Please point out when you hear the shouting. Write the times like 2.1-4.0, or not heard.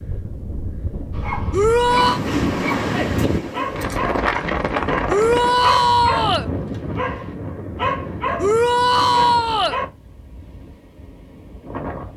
1.5-2.2, 5.0-6.5, 8.3-9.8.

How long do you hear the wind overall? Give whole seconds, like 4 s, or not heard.
12 s.